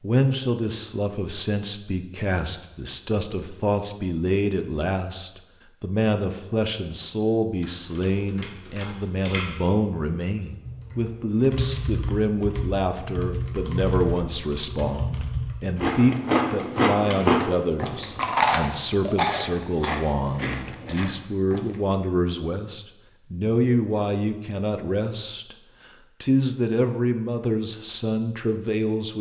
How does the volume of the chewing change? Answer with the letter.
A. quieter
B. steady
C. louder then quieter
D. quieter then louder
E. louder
A.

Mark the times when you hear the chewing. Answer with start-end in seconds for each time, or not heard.
15.8-21.9.